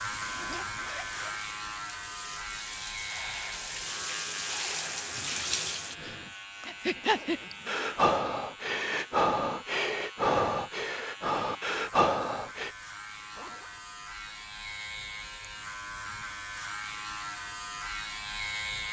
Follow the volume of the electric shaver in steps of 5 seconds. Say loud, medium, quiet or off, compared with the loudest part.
loud, medium, medium, loud.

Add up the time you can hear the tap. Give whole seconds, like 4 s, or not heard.
6 s.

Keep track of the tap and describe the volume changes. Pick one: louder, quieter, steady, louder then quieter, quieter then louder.
louder.